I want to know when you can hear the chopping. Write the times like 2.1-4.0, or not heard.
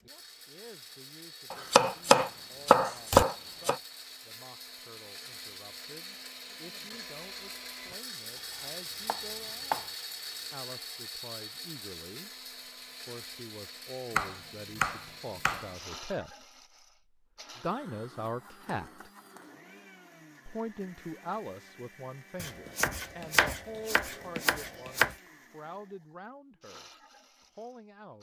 1.5-3.8, 8.6-9.9, 14.1-15.7, 22.4-25.1.